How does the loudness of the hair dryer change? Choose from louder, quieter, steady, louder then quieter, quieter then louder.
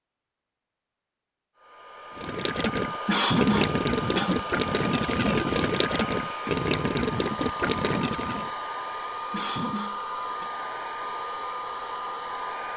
steady.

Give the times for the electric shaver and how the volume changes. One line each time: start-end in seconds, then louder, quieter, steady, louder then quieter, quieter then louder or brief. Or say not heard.
not heard.